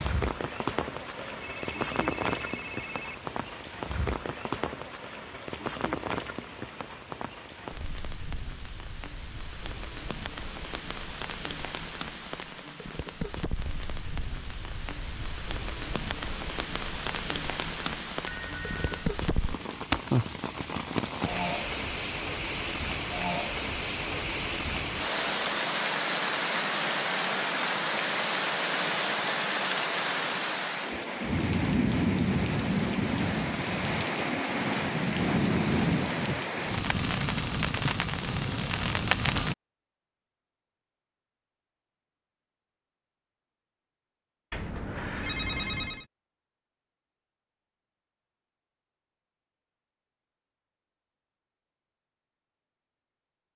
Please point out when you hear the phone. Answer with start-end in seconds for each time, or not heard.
1.3-3.2, 18.2-19.1, 44.5-46.0.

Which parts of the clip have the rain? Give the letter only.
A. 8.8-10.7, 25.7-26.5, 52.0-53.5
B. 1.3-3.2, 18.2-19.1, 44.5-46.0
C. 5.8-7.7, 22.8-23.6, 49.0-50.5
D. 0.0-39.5
D.